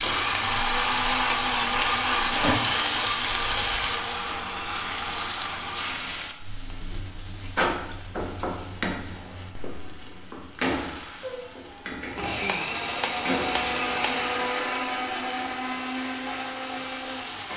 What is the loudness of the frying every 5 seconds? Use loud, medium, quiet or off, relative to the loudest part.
loud, loud, medium, quiet.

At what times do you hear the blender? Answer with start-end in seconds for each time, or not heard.
0.0-6.0, 12.1-17.5.